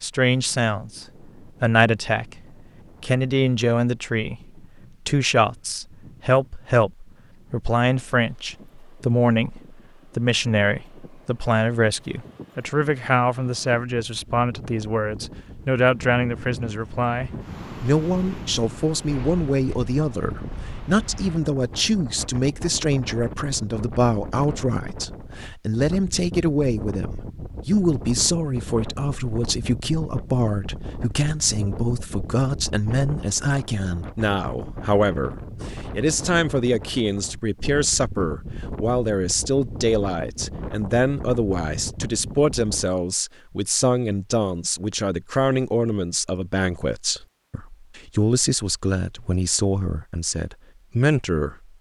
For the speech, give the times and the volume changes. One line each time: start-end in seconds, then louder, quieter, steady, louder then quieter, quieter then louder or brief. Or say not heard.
0.0-51.7 steady.